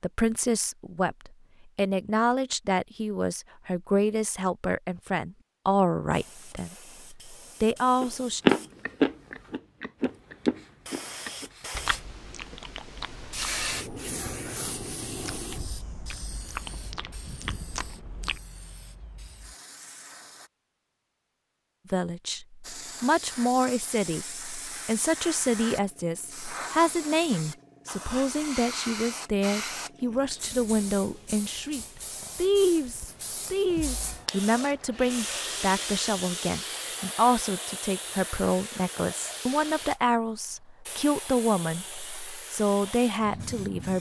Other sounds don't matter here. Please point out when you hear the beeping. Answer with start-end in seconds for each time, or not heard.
not heard.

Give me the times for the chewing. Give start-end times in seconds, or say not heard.
8.0-18.4.